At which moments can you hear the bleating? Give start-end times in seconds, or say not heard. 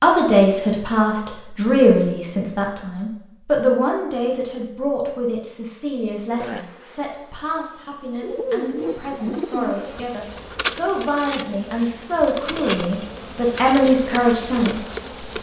not heard.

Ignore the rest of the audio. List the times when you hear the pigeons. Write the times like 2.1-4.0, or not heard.
8.2-10.1.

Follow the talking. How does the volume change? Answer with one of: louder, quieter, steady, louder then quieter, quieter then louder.
quieter then louder.